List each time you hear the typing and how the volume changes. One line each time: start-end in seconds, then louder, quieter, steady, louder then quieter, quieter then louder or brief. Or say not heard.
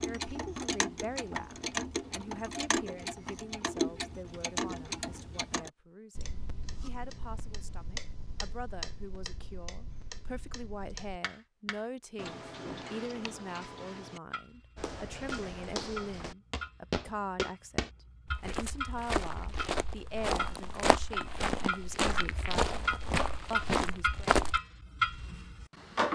not heard.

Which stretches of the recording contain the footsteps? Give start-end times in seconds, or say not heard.
14.8-24.6.